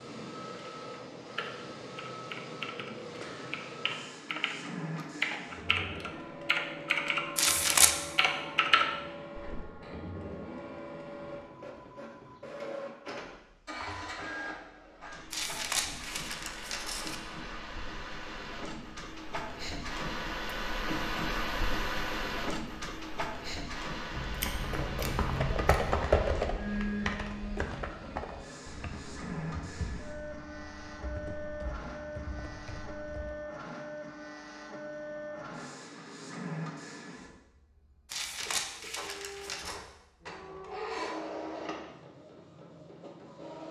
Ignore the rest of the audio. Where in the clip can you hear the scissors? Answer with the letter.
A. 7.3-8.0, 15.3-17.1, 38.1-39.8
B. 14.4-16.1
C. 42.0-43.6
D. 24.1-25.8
D.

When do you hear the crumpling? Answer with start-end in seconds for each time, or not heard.
7.3-8.0, 15.3-17.1, 38.1-39.8.